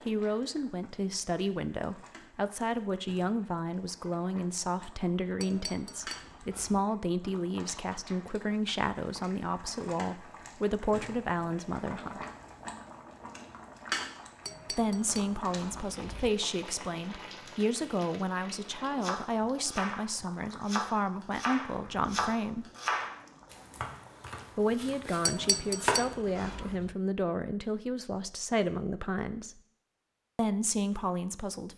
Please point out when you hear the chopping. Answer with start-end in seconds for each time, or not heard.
19.0-25.9.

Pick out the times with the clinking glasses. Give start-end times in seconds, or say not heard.
5.4-6.8, 14.4-16.3, 25.2-26.9.